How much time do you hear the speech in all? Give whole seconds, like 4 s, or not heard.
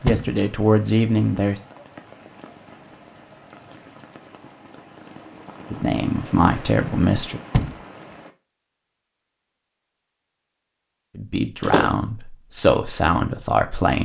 6 s.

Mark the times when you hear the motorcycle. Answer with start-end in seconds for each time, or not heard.
not heard.